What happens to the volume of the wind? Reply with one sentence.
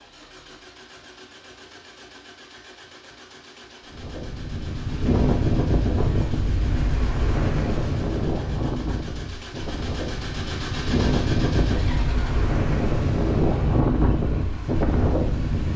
The loudness of the wind goes down, then up.